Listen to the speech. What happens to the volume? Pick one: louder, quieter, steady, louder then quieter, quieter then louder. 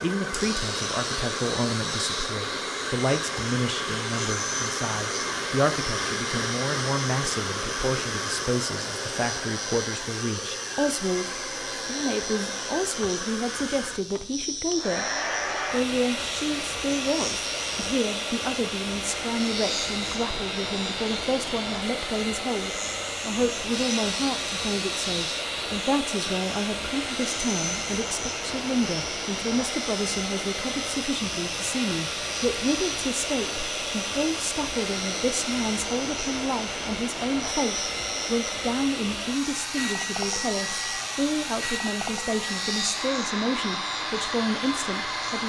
steady.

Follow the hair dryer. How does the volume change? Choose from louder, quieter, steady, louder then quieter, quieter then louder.
steady.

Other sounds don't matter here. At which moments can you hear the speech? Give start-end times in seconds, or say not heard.
0.0-15.1, 15.7-45.4.